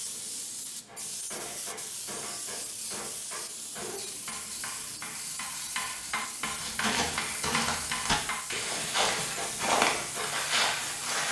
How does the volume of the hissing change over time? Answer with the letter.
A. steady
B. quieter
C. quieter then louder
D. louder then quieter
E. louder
A.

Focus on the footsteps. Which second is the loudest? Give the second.
10 s.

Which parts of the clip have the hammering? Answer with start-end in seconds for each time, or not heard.
0.8-10.3.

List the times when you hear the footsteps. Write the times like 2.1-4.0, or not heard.
6.5-11.2.